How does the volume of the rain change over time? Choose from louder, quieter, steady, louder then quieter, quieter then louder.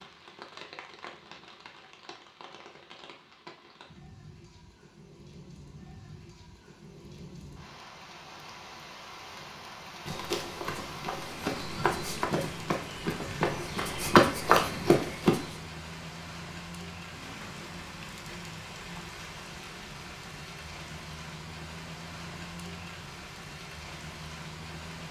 louder.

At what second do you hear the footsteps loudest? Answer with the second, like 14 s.
14 s.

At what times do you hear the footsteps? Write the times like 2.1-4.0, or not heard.
10.1-15.7.